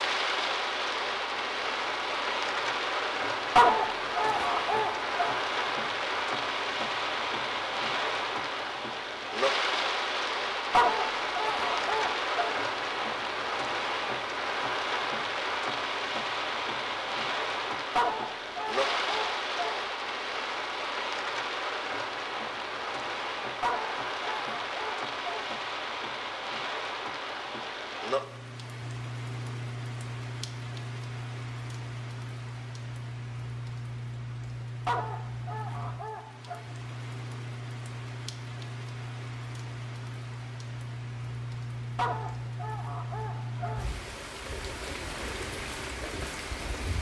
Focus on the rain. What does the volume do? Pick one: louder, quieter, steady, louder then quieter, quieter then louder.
quieter.